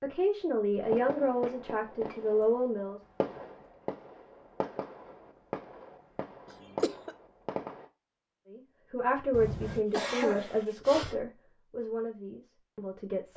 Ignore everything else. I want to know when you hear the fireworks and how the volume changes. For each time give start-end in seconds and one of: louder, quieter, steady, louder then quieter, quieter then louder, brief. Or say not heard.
0.8-7.9 steady.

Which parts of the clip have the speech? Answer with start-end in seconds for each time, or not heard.
0.0-3.0, 8.5-13.3.